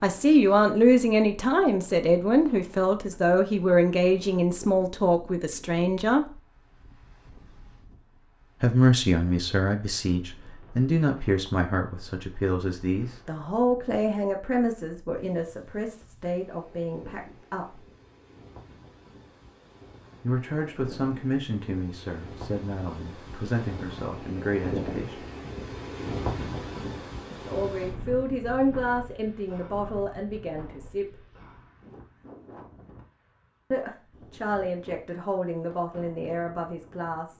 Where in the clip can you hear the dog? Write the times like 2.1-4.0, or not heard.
not heard.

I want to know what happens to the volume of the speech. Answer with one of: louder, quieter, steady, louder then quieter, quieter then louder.
quieter.